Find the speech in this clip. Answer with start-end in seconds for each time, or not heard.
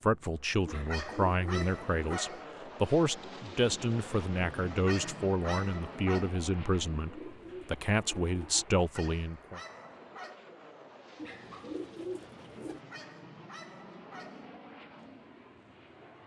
0.0-9.6.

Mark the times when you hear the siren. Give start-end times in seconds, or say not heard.
not heard.